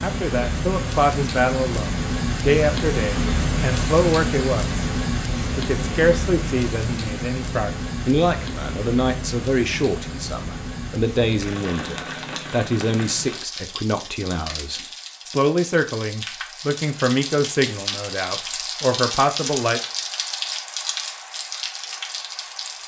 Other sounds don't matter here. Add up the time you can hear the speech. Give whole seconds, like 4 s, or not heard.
19 s.